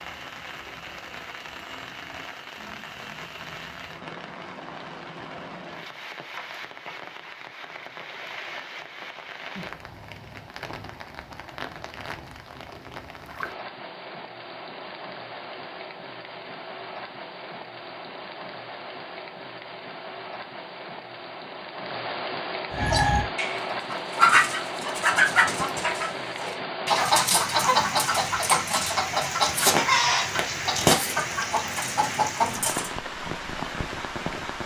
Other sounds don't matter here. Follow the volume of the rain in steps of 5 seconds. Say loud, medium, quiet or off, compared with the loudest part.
medium, medium, medium, medium, loud, loud, loud.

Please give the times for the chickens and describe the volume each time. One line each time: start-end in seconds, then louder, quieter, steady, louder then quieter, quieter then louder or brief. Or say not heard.
22.7-32.9 steady.